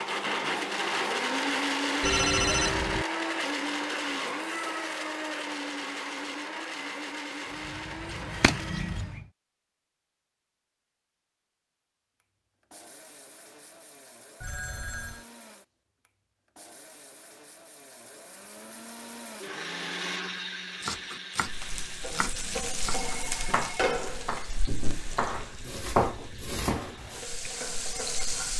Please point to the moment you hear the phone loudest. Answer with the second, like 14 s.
2 s.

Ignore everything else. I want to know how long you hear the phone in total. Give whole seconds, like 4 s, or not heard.
3 s.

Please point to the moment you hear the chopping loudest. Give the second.
26 s.